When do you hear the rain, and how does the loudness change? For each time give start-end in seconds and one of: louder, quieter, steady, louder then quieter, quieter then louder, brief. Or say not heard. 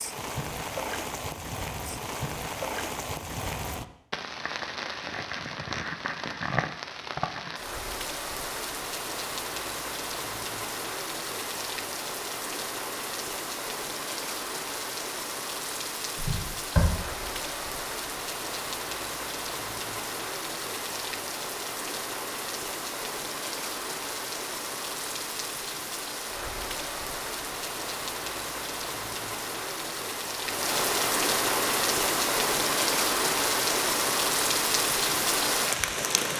0.0-36.3 louder.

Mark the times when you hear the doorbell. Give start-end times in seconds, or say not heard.
not heard.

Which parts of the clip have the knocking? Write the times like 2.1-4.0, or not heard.
16.1-16.9.